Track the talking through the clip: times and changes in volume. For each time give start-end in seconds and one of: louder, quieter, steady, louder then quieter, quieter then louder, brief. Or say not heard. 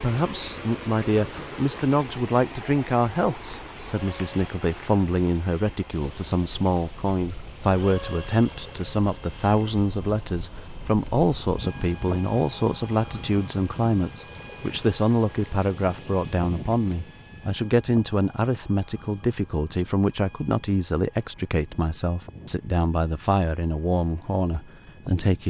0.0-25.4 steady.